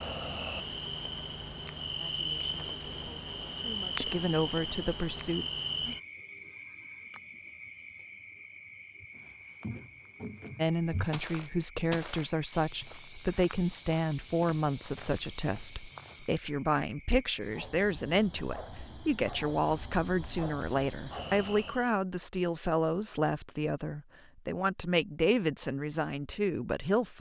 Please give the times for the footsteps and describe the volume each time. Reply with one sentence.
You can hear the footsteps from 9.0 to 16.4 s, getting louder.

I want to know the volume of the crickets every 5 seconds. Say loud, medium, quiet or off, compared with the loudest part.
loud, loud, quiet, quiet, medium, off.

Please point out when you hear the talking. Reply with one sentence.
The talking can be heard from 1.9 to 5.5 s and from 10.6 to 27.1 s.